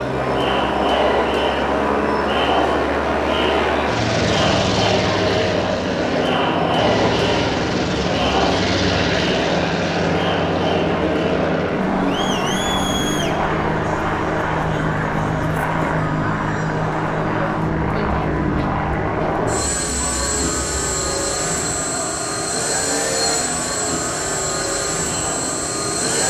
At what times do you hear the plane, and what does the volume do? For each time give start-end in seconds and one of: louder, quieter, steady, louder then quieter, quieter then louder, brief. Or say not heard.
0.0-26.2 steady.